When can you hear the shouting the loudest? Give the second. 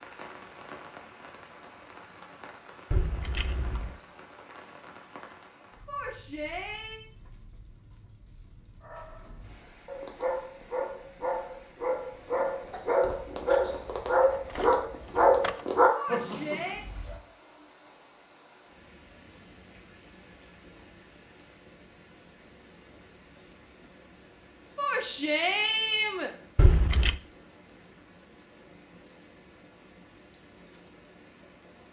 25 s.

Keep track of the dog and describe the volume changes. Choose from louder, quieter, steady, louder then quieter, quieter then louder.
louder.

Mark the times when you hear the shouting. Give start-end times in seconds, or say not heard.
5.8-7.0, 15.9-16.9, 24.8-26.3.